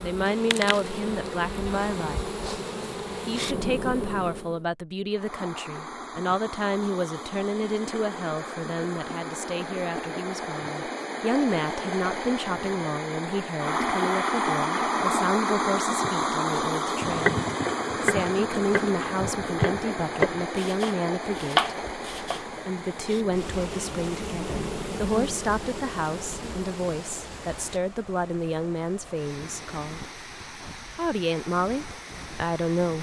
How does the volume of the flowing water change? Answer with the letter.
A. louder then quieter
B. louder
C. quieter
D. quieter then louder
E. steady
A.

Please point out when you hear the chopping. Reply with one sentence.
The chopping can be heard from 17.0 to 22.4 s.